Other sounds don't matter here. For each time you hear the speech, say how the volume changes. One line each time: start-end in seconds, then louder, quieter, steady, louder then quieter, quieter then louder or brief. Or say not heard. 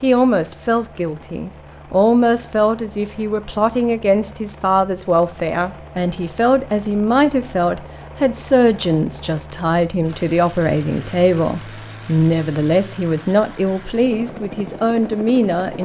0.0-15.8 steady.